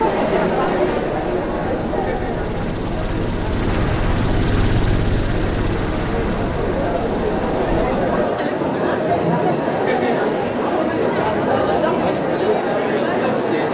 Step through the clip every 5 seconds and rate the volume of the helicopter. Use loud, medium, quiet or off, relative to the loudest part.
loud, loud, off.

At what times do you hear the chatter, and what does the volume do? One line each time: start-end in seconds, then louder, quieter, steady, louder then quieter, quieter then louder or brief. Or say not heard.
0.0-13.6 quieter then louder.